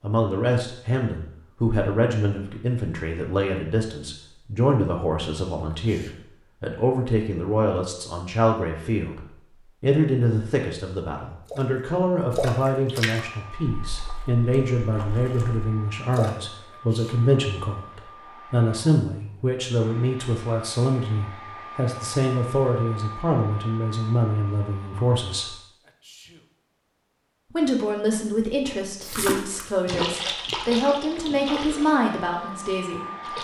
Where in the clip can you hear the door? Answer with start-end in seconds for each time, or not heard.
not heard.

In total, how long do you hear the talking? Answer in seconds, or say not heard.
31 s.